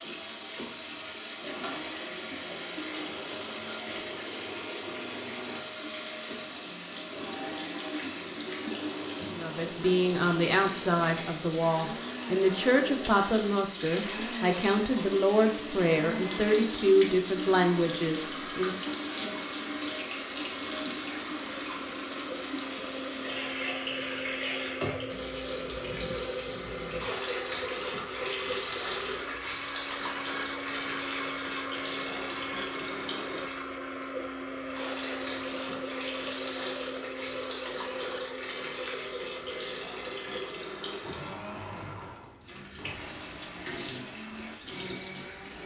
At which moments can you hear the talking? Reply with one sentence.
The talking can be heard from 9.3 to 18.9 s.